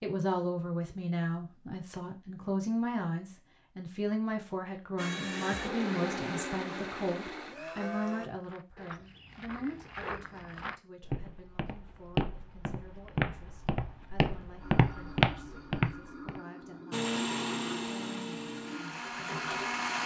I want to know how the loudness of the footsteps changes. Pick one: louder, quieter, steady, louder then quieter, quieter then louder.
louder.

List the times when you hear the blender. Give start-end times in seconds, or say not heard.
5.0-8.3, 16.9-20.0.